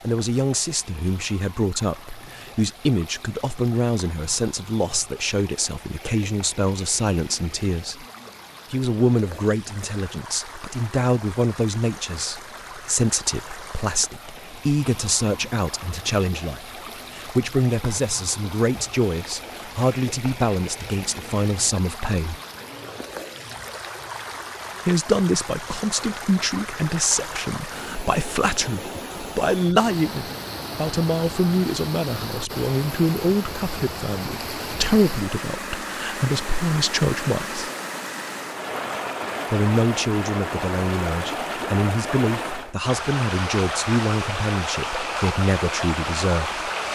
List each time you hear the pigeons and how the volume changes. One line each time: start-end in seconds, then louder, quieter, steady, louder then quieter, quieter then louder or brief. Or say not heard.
not heard.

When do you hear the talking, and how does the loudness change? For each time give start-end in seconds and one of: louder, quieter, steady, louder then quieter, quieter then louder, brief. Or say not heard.
0.0-8.1 steady
8.7-22.4 steady
24.9-37.7 steady
39.5-46.6 steady.